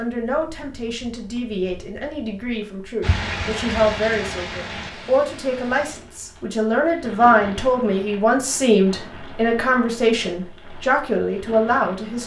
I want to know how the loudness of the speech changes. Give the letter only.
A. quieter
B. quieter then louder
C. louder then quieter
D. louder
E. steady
D.